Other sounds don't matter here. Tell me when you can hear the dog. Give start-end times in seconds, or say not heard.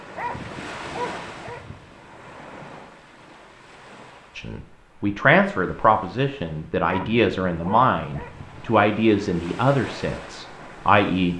0.1-1.9, 6.8-8.7.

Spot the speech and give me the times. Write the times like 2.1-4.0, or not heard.
4.3-11.3.